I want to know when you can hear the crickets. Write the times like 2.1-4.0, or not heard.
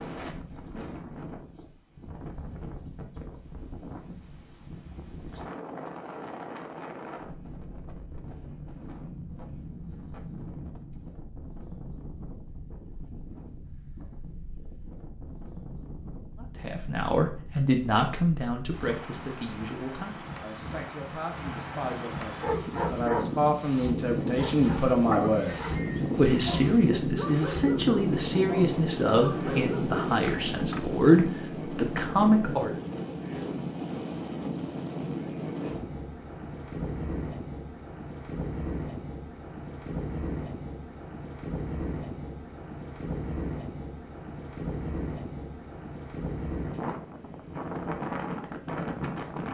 not heard.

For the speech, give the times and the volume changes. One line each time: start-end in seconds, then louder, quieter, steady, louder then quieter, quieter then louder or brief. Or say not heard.
16.4-32.8 quieter then louder.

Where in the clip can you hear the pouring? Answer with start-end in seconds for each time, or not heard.
not heard.